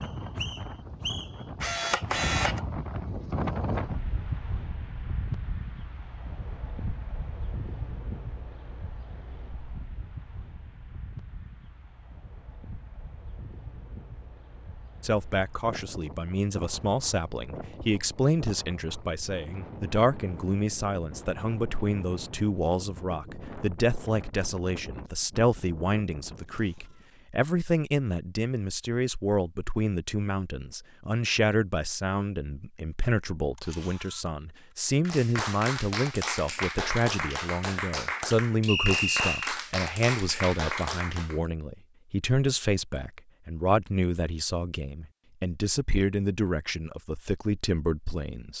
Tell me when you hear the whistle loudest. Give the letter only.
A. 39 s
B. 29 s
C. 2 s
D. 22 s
A.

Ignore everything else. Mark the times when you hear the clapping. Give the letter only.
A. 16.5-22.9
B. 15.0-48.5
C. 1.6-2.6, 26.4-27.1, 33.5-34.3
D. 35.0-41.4
D.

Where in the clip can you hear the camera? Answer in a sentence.
The camera can be heard from 1.6 to 2.6 s, from 26.4 to 27.1 s and from 33.5 to 34.3 s.